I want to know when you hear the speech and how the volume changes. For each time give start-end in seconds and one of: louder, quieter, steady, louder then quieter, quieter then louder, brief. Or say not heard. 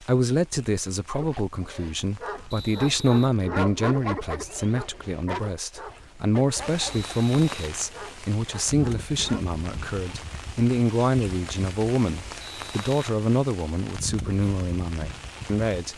0.0-15.9 steady.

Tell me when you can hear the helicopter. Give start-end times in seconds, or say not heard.
not heard.